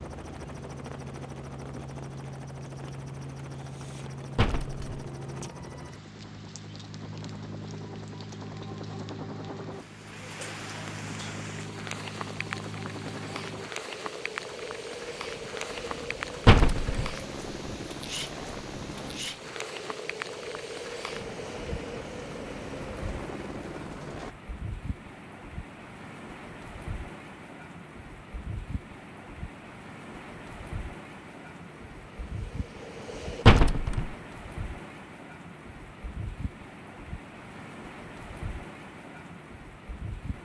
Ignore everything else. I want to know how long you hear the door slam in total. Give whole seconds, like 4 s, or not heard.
2 s.